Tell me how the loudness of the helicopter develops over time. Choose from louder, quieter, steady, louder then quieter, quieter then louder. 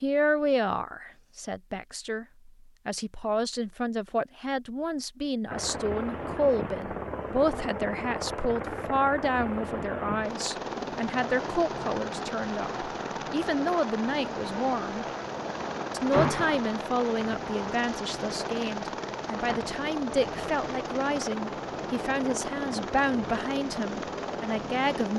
steady.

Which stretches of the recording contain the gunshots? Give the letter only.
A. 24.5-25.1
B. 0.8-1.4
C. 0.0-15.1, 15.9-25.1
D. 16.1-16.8
D.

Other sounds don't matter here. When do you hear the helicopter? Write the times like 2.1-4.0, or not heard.
5.5-25.1.